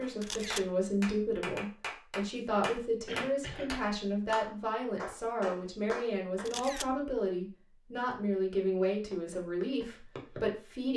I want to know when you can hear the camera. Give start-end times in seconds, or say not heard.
0.2-0.7, 6.5-7.0.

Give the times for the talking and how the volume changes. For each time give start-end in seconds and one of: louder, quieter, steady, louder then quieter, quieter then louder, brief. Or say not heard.
0.0-10.9 steady.